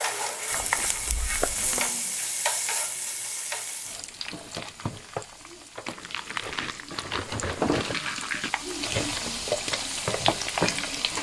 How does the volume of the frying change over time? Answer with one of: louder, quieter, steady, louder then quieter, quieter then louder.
quieter then louder.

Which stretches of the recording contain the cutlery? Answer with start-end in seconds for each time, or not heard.
1.6-2.2, 6.4-8.0.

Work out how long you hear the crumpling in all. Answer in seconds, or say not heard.
4 s.